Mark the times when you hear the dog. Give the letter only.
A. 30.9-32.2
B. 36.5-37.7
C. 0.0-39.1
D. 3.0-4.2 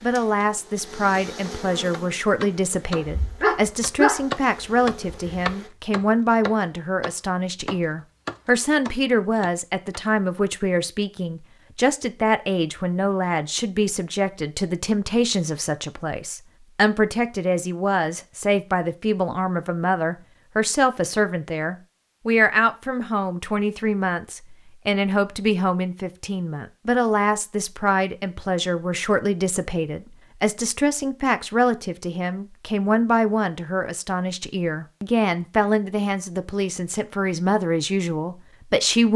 D.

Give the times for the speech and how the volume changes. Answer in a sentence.
The speech can be heard from 0.0 to 39.1 s, at a steady volume.